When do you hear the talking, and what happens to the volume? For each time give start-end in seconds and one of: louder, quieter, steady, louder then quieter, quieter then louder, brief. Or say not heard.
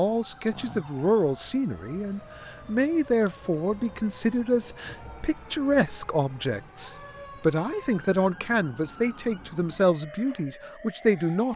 0.0-11.5 steady.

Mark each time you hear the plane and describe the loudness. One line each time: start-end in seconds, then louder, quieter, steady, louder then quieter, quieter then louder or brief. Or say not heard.
not heard.